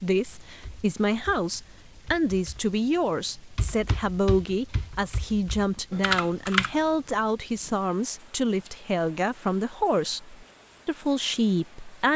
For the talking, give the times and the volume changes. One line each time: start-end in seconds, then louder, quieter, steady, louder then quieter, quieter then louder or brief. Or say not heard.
0.0-12.1 steady.